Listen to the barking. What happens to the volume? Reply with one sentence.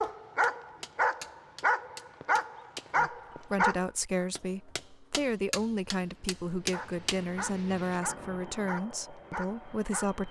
The loudness of the barking goes down.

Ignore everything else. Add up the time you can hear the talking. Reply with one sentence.
You can hear the talking for 7 seconds altogether.